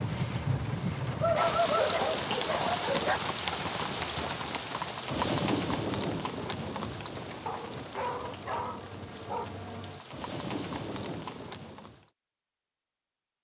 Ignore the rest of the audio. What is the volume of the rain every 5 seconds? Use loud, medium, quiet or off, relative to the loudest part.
loud, loud, medium.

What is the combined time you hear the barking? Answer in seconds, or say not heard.
4 s.